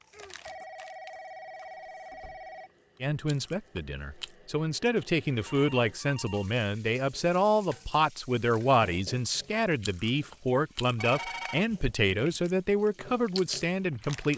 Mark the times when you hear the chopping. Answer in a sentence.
You can't hear the chopping here.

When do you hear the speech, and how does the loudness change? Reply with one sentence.
The speech can be heard from 3.0 to 14.3 s, at a steady volume.